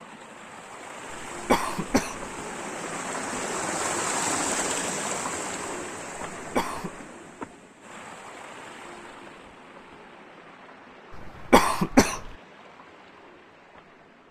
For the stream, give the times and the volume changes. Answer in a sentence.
The stream can be heard from 0.0 to 14.2 s, getting louder then quieter.